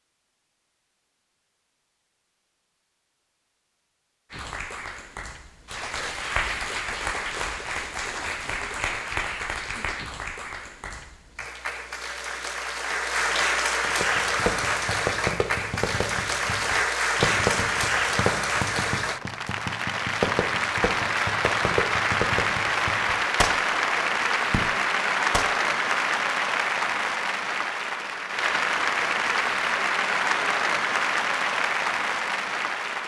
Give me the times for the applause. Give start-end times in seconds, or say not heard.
4.3-33.0.